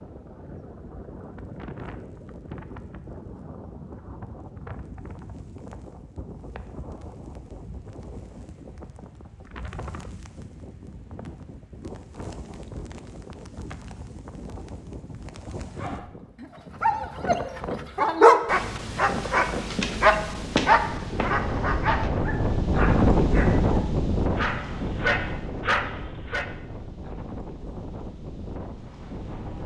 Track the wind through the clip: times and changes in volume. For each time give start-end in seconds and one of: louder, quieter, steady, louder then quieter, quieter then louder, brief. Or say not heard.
0.0-29.6 louder.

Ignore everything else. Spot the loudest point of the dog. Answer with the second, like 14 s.
18 s.